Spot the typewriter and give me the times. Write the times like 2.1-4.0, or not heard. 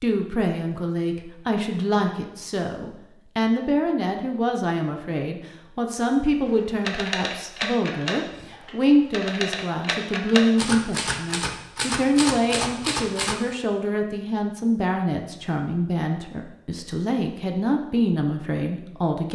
6.8-13.3.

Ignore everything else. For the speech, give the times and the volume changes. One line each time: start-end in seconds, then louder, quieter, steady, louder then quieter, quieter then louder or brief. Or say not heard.
0.0-19.3 steady.